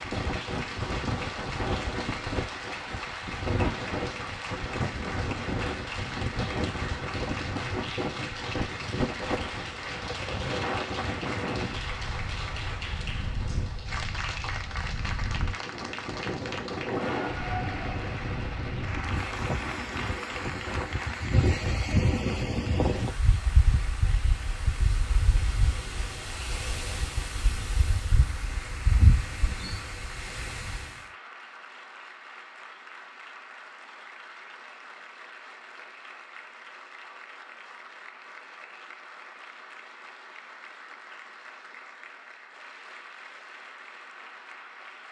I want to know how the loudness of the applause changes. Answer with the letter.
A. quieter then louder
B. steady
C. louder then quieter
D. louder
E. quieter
E.